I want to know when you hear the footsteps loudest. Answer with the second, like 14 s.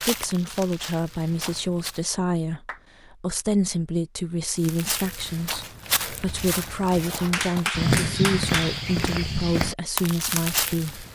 8 s.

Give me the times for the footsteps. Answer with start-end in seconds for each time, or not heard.
0.0-2.0, 4.5-11.1.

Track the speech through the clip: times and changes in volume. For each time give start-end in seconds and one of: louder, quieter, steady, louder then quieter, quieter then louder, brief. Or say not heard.
0.1-11.1 steady.